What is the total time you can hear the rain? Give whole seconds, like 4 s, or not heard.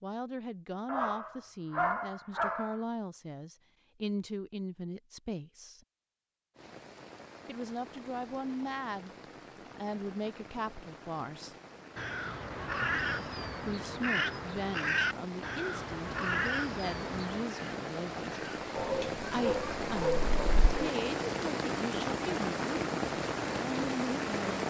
18 s.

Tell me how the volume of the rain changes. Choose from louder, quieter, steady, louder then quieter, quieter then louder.
louder.